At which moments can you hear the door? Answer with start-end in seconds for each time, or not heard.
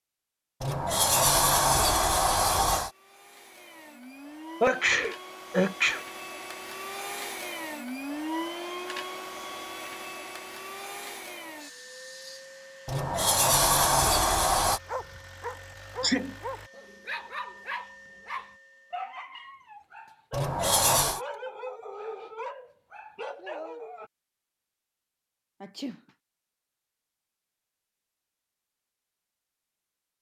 0.6-2.9, 12.8-14.8, 20.3-21.2.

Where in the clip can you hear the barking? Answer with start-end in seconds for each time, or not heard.
14.8-24.1.